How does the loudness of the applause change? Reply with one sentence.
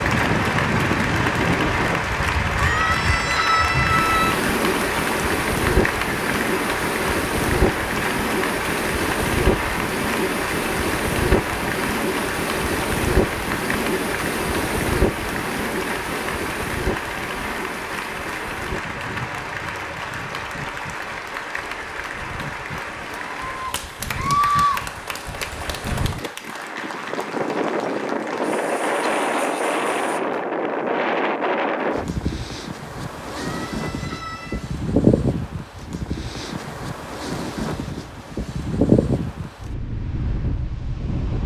The loudness of the applause goes down.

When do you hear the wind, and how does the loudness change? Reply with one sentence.
The wind can be heard from 0.0 to 41.4 s, getting quieter then louder.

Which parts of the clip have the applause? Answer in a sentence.
The applause can be heard from 0.0 to 30.2 s.